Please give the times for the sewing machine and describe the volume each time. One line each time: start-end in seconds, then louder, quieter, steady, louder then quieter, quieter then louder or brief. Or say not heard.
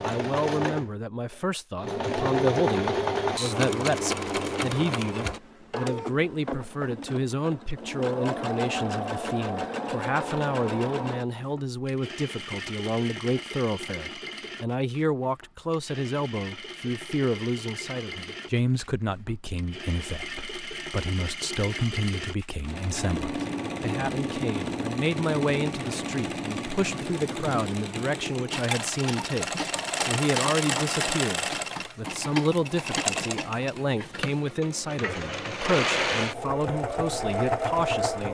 0.0-38.2 quieter then louder.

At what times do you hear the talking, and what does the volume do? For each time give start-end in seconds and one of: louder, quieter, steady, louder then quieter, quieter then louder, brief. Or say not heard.
0.0-38.2 steady.